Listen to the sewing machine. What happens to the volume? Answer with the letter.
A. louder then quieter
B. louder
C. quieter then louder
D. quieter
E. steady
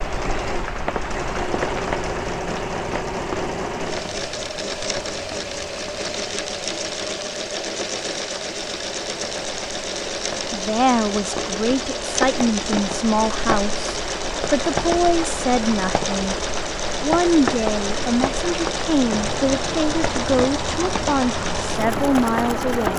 E.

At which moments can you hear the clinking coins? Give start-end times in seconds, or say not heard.
not heard.